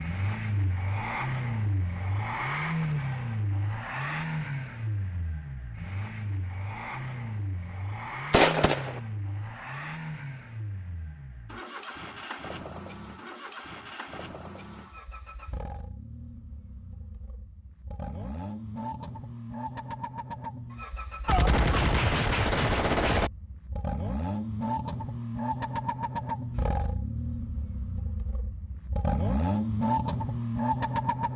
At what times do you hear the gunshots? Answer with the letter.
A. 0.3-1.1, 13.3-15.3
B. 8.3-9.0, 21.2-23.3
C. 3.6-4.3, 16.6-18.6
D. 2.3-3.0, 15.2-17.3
B.